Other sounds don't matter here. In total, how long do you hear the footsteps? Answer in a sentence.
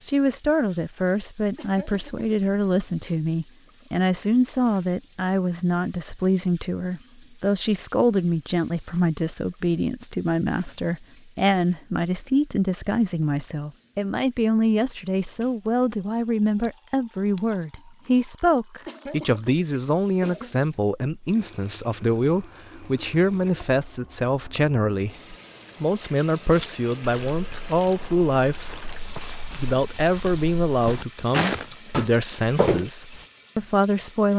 The footsteps can be heard for 7 seconds in total.